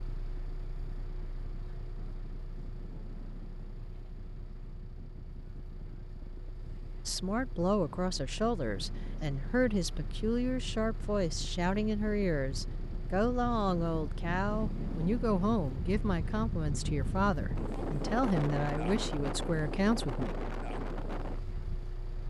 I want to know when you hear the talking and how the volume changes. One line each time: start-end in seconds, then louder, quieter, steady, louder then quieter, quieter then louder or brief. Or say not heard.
7.0-20.4 steady.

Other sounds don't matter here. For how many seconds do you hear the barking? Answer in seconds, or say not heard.
not heard.